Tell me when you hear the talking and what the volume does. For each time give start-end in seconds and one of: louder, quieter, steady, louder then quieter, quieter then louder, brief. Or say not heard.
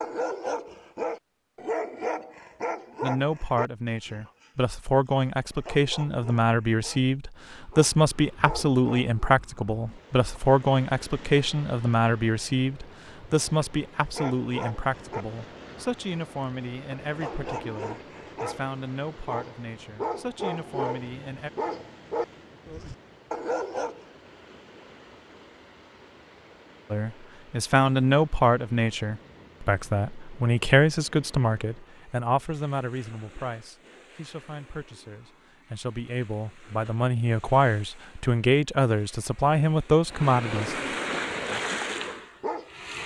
3.0-21.5 quieter
26.9-41.0 quieter then louder.